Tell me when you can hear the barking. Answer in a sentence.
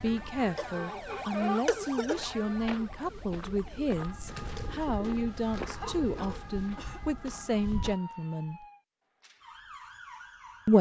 The barking can't be heard in this clip.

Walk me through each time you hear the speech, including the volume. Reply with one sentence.
The speech can be heard from 0.0 to 8.7 s, at a steady volume.